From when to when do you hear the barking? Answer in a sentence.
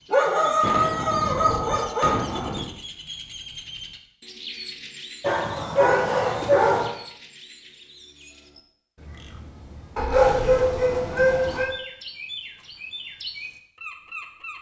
The barking can be heard from 0.1 to 2.5 s, from 5.2 to 6.9 s and from 9.9 to 11.7 s.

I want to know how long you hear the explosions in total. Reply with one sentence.
You can hear the explosions for 2 seconds altogether.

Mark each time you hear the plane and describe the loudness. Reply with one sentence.
You can't hear the plane here.